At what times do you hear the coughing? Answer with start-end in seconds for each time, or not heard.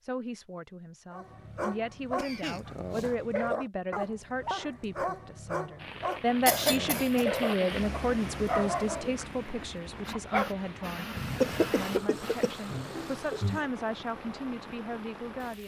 2.1-3.1, 6.1-7.8, 11.2-13.7.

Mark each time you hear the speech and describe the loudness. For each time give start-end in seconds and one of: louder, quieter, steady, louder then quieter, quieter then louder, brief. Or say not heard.
0.0-15.6 louder then quieter.